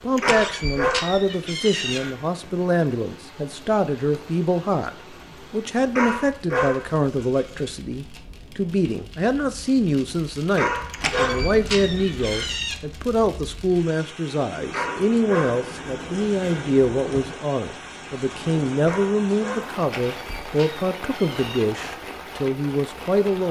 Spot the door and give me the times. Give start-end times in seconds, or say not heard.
0.1-2.0, 10.9-12.8, 19.8-21.6.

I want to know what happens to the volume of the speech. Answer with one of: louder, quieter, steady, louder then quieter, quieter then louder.
steady.